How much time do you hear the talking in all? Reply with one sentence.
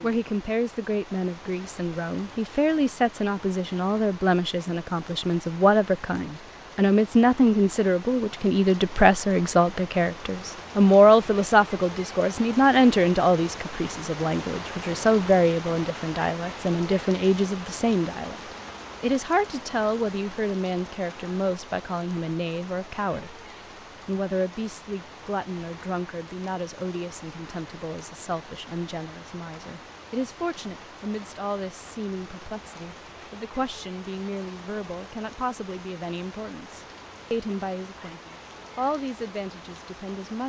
The talking can be heard for 39 seconds in total.